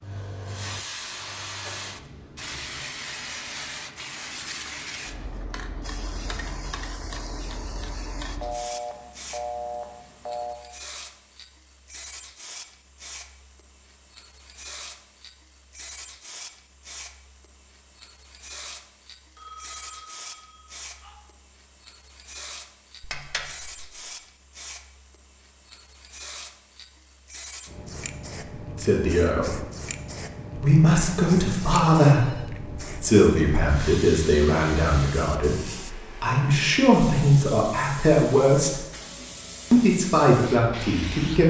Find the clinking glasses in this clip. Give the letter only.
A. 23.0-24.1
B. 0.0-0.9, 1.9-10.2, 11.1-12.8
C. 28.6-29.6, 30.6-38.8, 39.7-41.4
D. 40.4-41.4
A.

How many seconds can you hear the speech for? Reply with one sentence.
The speech can be heard for 11 seconds in total.